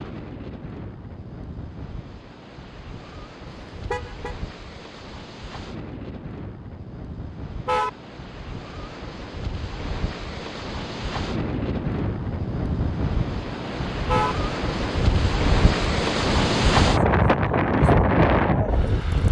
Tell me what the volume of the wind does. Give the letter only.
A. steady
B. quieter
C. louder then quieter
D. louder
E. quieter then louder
D.